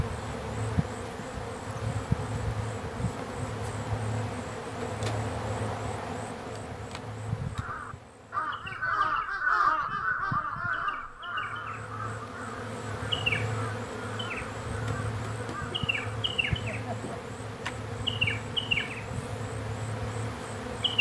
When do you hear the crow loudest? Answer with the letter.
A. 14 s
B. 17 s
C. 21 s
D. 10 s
D.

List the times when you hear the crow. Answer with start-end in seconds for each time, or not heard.
7.5-17.1.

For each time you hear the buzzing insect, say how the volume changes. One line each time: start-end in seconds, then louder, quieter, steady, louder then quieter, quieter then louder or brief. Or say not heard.
0.0-20.9 quieter then louder.